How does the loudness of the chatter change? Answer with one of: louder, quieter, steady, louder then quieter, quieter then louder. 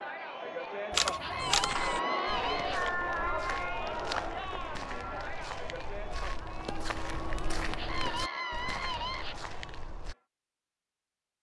quieter.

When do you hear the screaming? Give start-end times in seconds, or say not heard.
1.2-2.8, 7.8-9.3.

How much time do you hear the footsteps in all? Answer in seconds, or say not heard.
9 s.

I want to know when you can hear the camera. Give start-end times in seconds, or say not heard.
0.9-1.8.